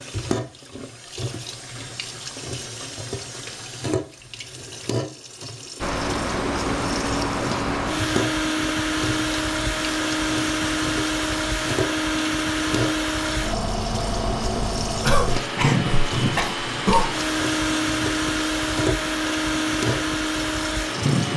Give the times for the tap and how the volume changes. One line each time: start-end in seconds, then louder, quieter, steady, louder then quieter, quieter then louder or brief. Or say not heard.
0.0-21.3 steady.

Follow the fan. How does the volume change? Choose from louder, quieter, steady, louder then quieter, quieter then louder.
steady.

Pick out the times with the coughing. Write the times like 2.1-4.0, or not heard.
15.0-17.1.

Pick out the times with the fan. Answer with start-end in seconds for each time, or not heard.
5.8-21.3.